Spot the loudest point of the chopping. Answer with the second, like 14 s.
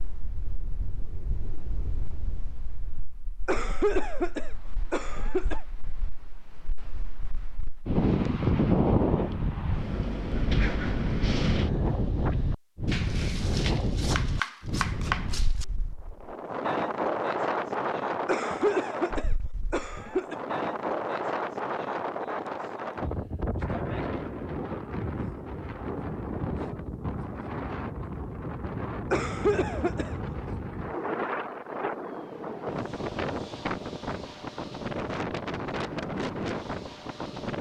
15 s.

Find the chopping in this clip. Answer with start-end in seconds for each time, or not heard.
12.8-15.7.